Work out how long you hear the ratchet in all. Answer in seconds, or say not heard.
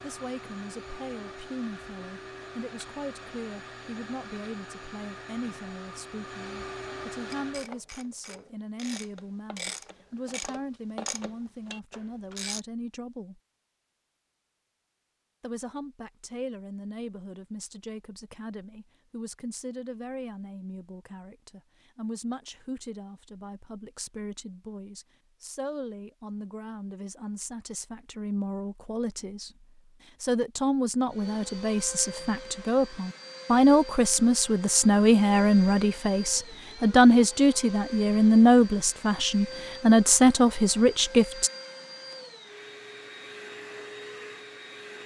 5 s.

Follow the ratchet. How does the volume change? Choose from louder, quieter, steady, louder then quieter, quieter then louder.
louder then quieter.